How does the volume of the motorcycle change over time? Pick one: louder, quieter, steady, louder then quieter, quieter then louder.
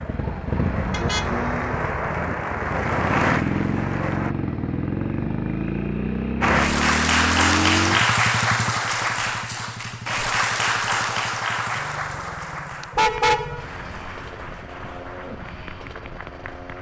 quieter.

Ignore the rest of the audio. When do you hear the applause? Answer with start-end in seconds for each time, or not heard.
0.0-4.3, 6.4-16.7.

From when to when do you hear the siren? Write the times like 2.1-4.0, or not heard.
not heard.